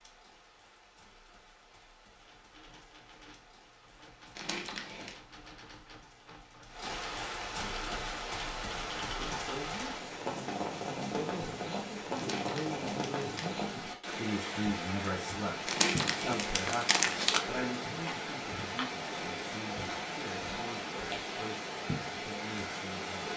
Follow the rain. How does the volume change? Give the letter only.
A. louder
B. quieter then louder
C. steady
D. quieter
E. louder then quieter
A.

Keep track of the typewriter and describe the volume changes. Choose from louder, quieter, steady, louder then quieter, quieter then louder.
louder.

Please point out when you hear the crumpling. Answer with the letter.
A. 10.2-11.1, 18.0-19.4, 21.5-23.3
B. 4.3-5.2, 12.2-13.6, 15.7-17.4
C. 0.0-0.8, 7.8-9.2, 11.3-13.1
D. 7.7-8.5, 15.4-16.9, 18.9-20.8
B.